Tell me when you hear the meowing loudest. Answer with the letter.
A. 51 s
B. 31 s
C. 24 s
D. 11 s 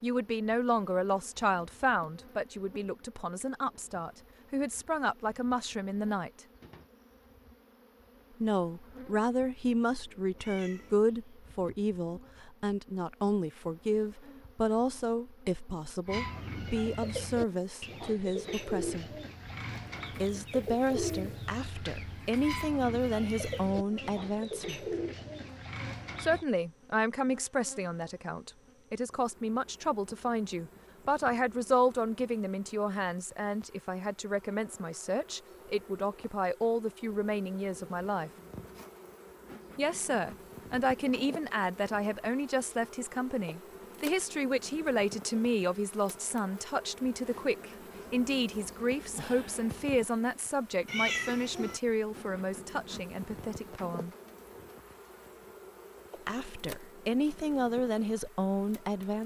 A.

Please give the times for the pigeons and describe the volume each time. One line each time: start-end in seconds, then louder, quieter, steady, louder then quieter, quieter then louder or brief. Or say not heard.
16.1-26.4 steady.